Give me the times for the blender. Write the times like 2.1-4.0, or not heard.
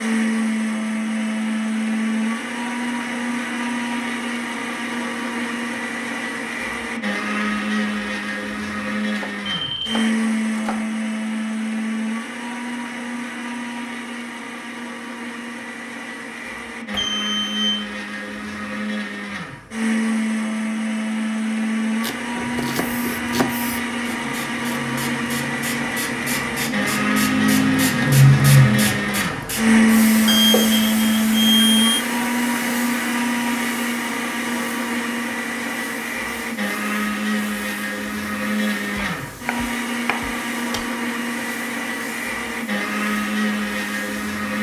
0.0-44.5.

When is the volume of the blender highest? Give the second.
30 s.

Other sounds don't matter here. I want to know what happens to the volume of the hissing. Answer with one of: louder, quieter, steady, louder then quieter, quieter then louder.
louder then quieter.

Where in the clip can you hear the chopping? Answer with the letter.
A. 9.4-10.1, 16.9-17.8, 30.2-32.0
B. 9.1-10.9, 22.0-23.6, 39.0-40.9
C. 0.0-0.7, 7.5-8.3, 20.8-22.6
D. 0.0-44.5
B.